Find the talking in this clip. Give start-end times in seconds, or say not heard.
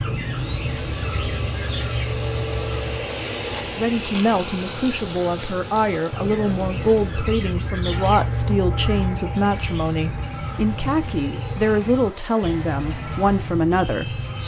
3.8-14.4.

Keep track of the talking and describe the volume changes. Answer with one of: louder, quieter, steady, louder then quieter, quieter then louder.
steady.